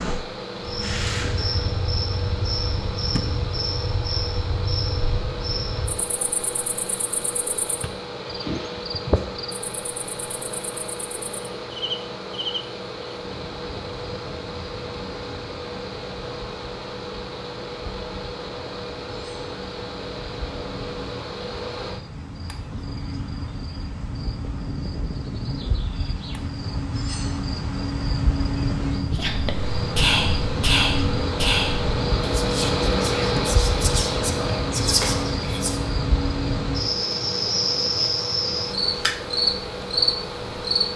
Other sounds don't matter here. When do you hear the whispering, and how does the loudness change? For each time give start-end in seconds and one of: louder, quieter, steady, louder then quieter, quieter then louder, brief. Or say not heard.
29.1-35.8 quieter then louder.